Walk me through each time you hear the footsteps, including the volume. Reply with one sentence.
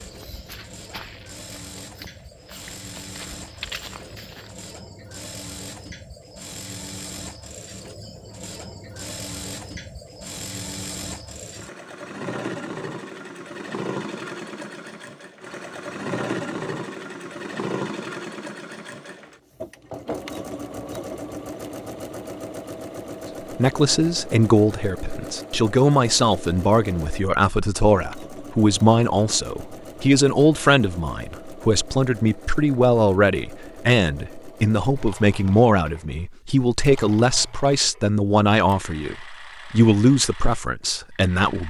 The footsteps can be heard from 0.0 to 4.7 s, getting quieter then louder.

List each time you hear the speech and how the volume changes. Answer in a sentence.
The speech can be heard from 23.5 to 41.6 s, at a steady volume.